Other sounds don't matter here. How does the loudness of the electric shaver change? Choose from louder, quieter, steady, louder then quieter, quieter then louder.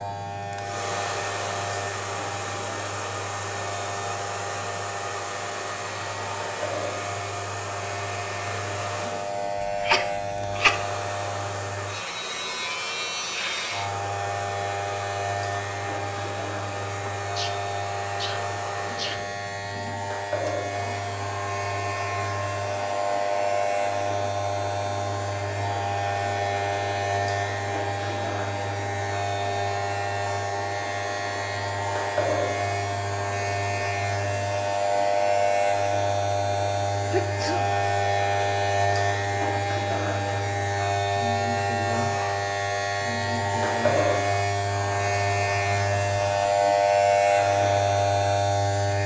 louder.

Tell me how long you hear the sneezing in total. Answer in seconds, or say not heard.
4 s.